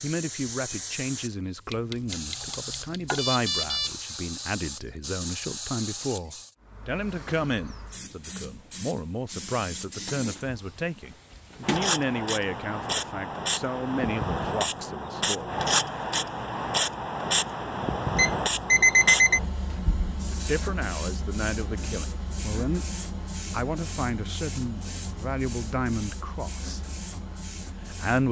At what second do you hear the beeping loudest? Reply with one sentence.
The loudest moment of the beeping is at 19 seconds.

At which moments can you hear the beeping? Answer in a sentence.
The beeping can be heard from 1.7 to 3.9 s and from 18.1 to 19.4 s.